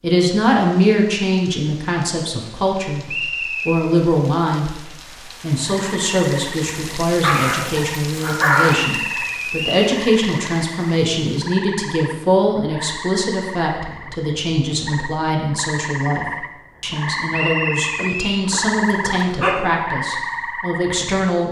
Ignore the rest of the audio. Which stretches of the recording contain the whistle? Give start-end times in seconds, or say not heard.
3.0-3.8, 8.7-9.9, 17.3-18.4.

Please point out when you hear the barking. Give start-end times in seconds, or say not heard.
7.2-8.8, 17.9-19.7.